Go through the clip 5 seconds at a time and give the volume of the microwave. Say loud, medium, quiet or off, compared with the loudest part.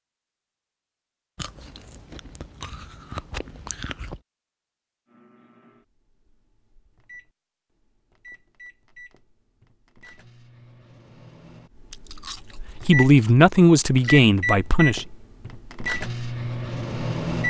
off, quiet, loud, loud.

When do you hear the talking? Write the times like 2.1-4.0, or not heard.
12.8-15.1.